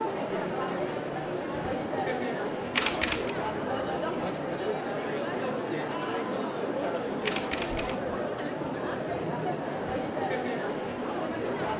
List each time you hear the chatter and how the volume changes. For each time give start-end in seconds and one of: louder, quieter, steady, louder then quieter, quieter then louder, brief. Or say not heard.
0.0-11.7 steady.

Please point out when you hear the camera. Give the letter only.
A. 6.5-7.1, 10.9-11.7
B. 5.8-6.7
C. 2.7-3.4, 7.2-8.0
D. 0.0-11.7
C.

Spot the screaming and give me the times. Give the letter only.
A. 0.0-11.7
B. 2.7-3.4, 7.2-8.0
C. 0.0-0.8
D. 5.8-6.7
D.